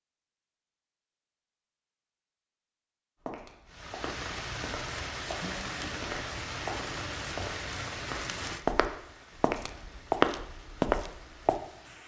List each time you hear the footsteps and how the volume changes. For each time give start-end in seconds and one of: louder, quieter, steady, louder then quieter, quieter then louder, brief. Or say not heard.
3.2-11.6 louder.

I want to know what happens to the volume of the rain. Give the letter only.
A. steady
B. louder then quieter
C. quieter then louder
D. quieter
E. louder
D.